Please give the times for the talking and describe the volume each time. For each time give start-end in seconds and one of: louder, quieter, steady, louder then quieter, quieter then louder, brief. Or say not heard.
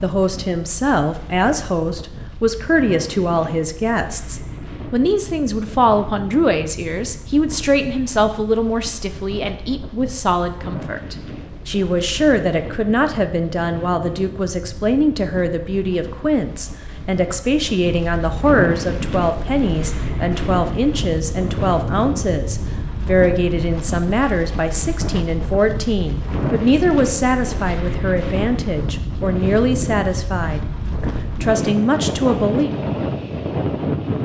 0.0-32.7 steady.